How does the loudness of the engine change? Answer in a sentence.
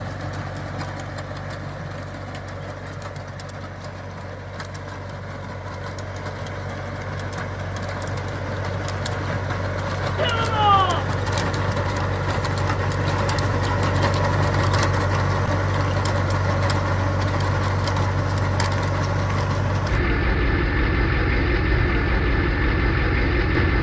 The volume of the engine goes up.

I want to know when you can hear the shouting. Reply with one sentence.
The shouting can be heard from 10.2 to 11.1 s.